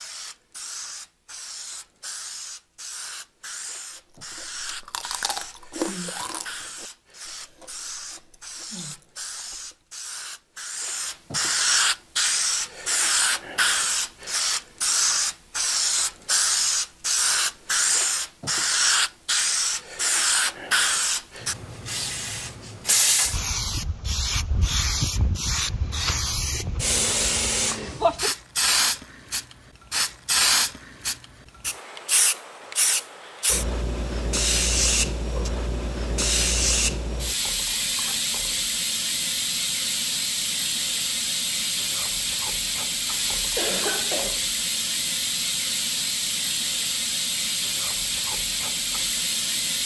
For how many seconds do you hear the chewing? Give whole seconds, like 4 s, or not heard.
6 s.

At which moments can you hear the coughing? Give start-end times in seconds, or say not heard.
43.5-44.4.